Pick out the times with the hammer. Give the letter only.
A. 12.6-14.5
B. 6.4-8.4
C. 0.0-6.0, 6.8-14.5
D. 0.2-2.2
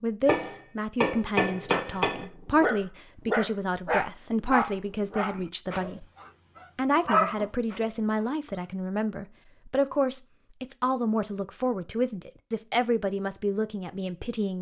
D.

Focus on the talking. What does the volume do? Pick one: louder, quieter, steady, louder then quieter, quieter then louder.
steady.